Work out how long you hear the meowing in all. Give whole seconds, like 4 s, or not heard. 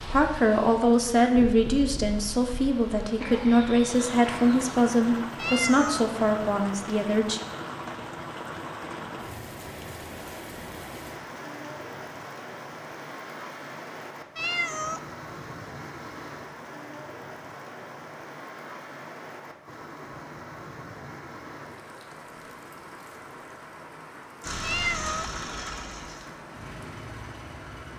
2 s.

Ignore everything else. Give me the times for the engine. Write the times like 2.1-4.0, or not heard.
24.4-27.9.